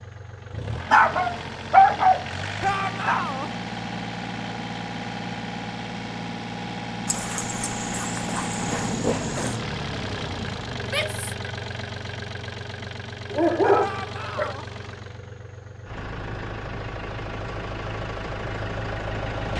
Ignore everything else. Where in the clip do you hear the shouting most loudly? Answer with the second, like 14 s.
3 s.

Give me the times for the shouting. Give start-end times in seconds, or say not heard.
2.6-3.5, 10.8-11.5, 13.8-14.7.